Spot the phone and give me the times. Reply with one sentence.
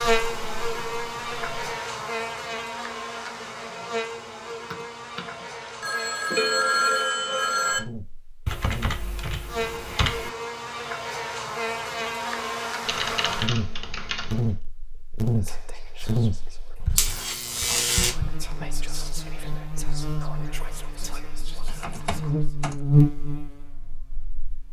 The phone can be heard from 5.8 to 7.8 s.